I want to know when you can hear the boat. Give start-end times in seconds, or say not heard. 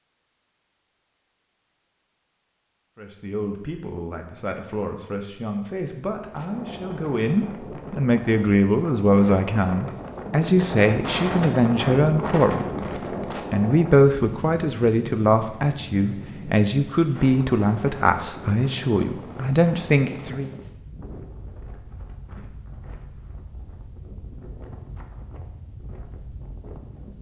not heard.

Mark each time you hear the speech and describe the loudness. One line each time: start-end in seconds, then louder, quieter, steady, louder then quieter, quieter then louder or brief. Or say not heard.
3.0-20.6 louder.